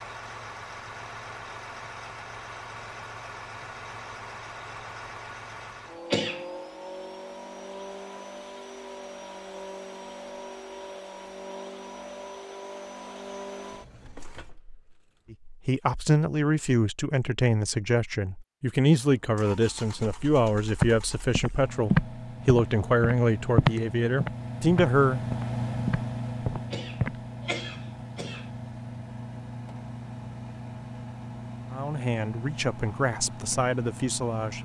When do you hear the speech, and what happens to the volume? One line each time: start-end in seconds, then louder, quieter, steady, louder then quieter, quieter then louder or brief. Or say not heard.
15.3-25.2 steady
31.7-34.5 brief.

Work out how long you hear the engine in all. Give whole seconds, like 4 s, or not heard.
30 s.